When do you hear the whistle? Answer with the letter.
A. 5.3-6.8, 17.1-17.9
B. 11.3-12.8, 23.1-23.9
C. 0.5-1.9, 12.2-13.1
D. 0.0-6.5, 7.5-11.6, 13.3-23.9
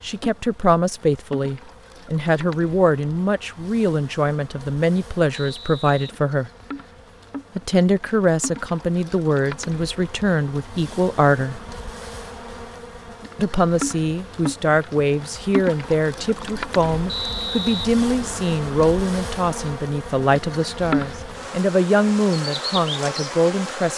A.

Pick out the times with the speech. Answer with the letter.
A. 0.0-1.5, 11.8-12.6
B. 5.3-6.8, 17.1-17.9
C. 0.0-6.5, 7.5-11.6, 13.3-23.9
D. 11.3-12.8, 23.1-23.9
C.